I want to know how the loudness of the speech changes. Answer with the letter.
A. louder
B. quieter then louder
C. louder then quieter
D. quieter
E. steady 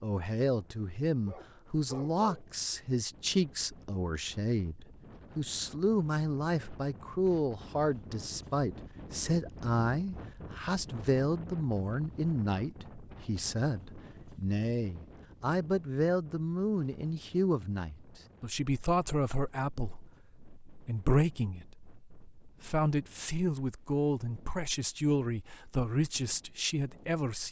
E.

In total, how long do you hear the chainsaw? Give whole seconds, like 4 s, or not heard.
not heard.